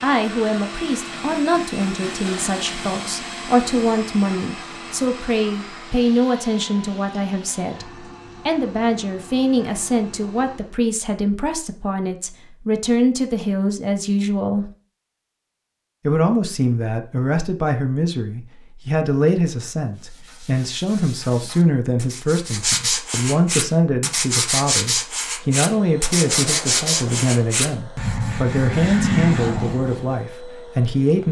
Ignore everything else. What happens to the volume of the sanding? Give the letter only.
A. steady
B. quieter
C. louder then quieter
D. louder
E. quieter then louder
D.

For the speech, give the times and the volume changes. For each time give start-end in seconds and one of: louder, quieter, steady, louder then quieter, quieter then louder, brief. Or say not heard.
0.0-14.7 steady
16.1-31.2 steady.